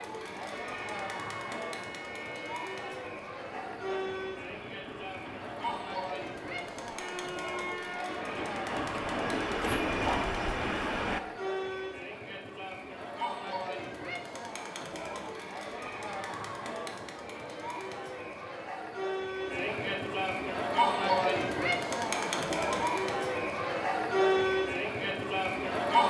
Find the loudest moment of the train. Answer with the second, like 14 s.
10 s.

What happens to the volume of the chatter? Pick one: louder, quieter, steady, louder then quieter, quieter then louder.
louder.